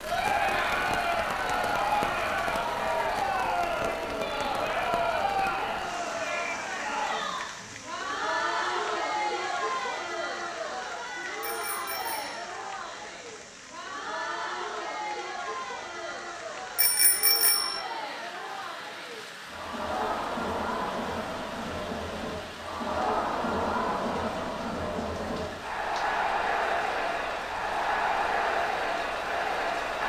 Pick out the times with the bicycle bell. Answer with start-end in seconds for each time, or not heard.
11.4-12.4, 16.8-17.9.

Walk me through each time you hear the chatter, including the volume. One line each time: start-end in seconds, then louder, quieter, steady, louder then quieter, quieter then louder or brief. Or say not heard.
0.0-30.0 quieter then louder.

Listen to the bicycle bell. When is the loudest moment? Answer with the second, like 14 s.
17 s.